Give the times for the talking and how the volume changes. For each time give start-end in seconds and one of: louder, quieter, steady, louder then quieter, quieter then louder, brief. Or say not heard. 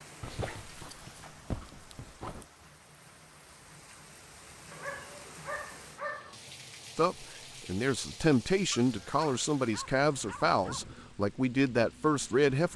7.0-12.7 steady.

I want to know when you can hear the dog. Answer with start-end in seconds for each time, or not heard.
0.2-2.5, 4.7-6.3, 8.7-10.9.